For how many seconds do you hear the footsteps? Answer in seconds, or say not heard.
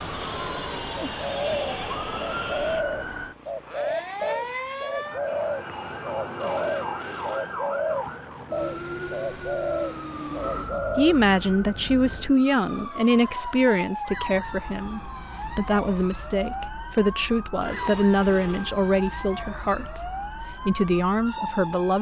not heard.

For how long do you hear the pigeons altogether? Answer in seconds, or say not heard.
10 s.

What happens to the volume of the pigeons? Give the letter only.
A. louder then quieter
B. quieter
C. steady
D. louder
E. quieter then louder
C.